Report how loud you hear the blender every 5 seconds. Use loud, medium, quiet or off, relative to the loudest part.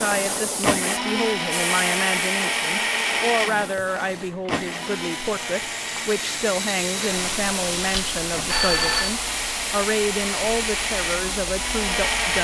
loud, medium, loud.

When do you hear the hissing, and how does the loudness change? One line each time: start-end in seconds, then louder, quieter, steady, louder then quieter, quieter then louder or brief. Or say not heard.
0.0-12.3 quieter then louder.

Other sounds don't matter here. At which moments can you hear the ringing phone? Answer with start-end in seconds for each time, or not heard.
7.8-9.2.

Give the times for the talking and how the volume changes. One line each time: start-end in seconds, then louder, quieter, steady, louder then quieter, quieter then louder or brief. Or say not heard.
0.0-12.3 steady.